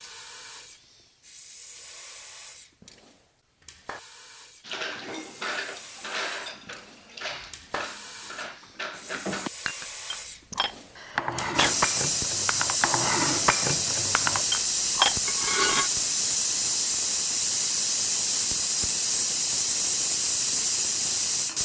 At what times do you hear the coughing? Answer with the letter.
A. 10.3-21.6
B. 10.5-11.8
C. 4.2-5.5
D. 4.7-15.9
B.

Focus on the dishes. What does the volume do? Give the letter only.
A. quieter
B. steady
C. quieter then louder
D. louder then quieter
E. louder
E.